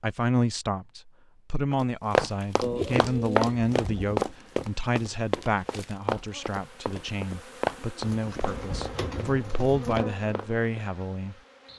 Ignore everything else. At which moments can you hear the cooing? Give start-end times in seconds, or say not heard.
2.6-4.2, 8.1-10.1.